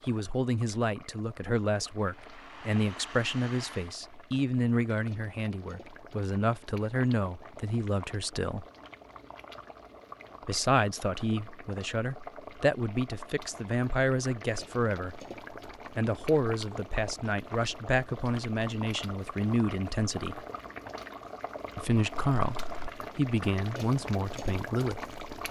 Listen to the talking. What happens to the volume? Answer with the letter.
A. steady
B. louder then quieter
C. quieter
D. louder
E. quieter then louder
A.